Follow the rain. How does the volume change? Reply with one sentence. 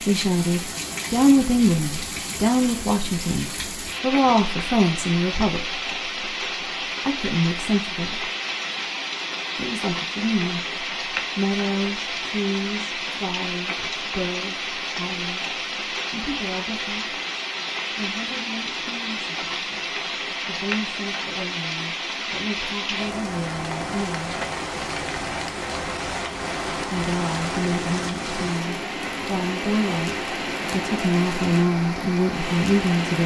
The volume of the rain stays about the same.